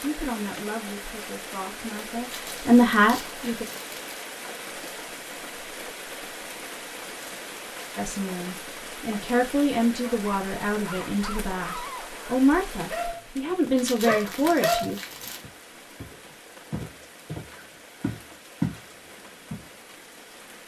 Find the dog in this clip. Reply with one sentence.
The dog can be heard from 10.0 to 13.2 s and from 14.0 to 14.9 s.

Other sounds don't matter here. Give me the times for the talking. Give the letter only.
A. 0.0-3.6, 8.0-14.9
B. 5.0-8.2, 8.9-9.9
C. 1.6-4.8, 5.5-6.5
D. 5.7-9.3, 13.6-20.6
A.